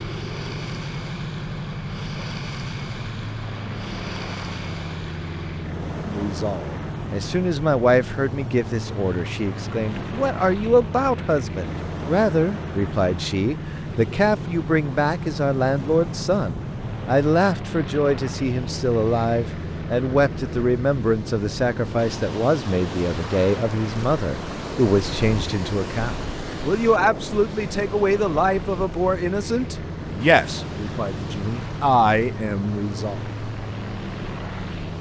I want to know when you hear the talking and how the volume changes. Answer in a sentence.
The talking can be heard from 6.0 to 33.2 s, at a steady volume.